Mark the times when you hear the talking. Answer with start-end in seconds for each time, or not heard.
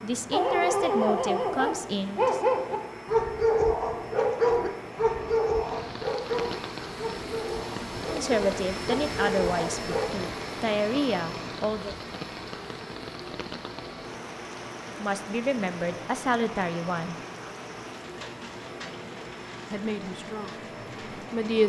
0.0-2.4, 8.1-11.9, 14.8-17.1, 19.7-21.6.